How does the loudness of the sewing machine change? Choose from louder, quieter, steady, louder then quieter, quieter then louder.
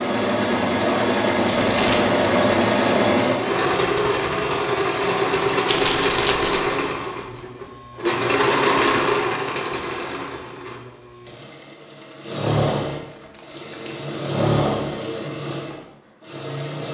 quieter.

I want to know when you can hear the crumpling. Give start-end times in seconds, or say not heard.
1.4-2.1, 5.7-6.7, 13.1-14.1.